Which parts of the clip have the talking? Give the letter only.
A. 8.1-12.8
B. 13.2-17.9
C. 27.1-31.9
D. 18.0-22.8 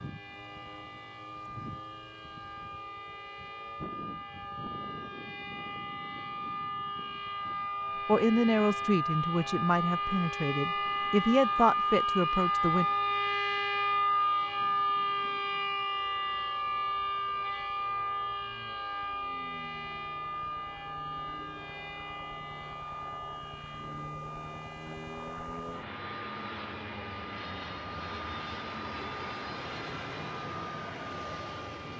A.